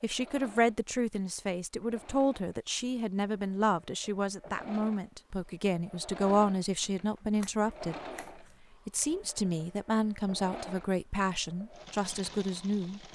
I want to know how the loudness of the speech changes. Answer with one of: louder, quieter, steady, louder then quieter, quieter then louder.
steady.